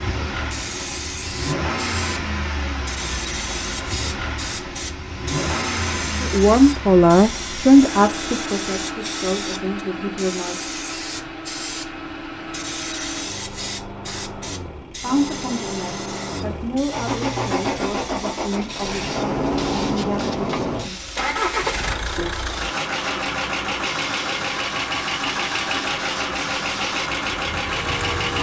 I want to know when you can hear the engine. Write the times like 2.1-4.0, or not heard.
0.0-28.3.